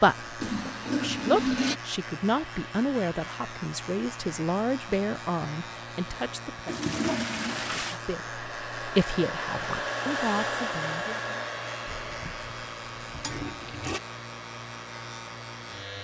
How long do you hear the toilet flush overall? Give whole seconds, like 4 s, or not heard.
5 s.